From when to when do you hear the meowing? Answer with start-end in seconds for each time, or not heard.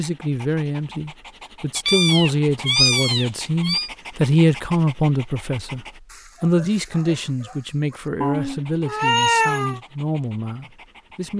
1.8-3.9, 8.2-9.8.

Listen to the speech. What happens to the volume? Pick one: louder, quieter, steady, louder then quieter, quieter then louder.
quieter.